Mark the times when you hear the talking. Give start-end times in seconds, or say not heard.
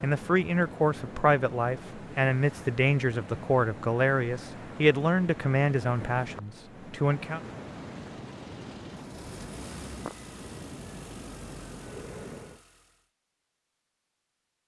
0.0-7.4.